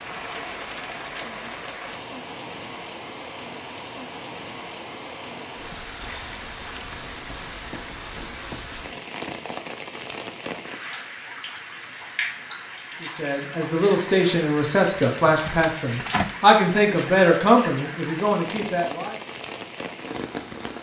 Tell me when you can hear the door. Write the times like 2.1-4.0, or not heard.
15.2-16.4.